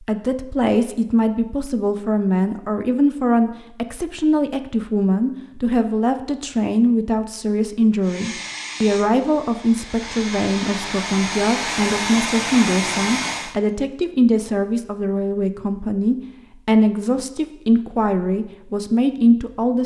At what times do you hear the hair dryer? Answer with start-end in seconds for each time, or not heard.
8.0-13.6.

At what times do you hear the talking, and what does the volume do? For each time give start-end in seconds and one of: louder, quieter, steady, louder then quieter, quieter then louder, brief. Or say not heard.
0.0-19.8 steady.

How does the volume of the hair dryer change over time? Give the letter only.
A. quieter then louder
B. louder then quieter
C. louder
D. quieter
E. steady
C.